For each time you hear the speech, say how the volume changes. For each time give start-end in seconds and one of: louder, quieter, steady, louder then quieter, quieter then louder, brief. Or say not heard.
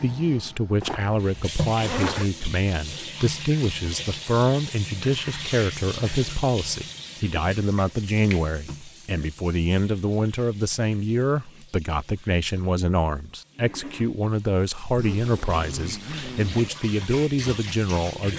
0.0-18.3 steady.